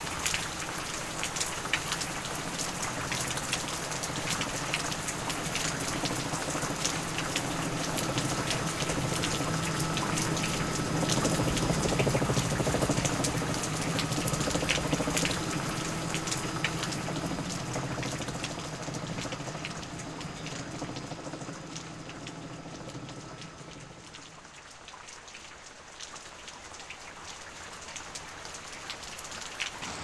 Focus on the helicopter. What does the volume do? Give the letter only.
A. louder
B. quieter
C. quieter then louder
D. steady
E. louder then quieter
E.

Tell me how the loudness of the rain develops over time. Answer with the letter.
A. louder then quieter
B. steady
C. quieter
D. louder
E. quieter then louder
C.